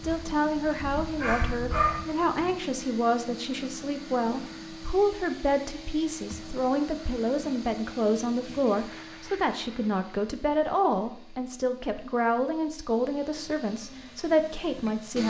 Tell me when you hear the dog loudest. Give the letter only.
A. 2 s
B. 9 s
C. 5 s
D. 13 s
A.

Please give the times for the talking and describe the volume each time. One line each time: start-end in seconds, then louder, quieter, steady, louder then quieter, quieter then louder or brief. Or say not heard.
0.0-15.2 steady.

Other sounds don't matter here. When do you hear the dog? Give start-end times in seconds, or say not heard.
0.0-2.5.